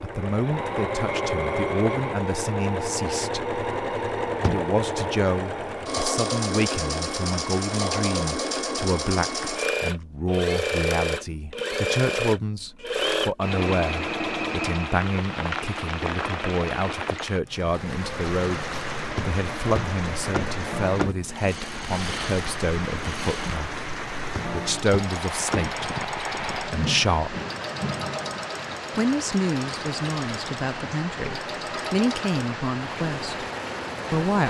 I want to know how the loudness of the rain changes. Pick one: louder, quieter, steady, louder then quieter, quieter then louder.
steady.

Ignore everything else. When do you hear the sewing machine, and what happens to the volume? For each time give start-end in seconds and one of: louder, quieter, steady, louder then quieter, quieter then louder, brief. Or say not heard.
0.0-34.4 quieter.